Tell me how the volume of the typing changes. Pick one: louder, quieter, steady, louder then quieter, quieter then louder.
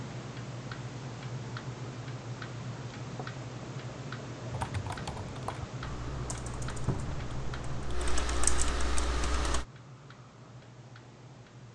quieter then louder.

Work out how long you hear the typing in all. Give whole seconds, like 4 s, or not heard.
5 s.